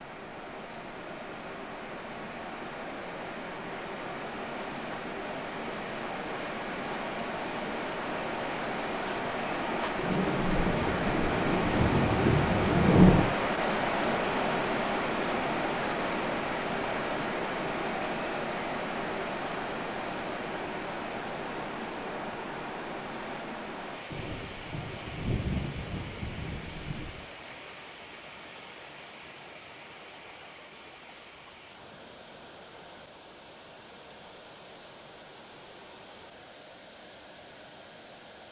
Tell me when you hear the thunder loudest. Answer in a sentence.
The loudest moment of the thunder is at 13 seconds.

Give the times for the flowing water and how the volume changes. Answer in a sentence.
The flowing water can be heard from 0.0 to 38.4 s, getting louder then quieter.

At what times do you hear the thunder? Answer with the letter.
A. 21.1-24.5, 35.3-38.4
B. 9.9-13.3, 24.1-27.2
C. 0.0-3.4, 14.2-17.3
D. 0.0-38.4
B.